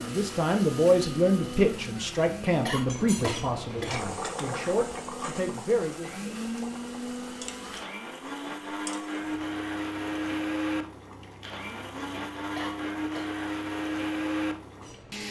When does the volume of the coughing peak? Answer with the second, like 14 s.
3 s.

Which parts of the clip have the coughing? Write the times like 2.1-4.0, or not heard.
2.6-4.0, 12.6-13.3.